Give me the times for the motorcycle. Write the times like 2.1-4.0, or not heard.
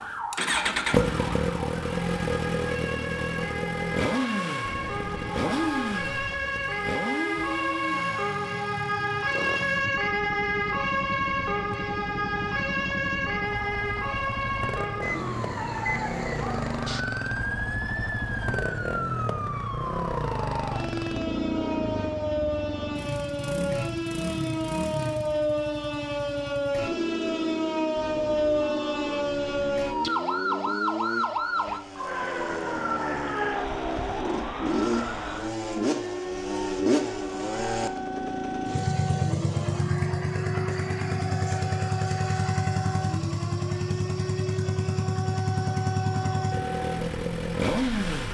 0.0-48.2.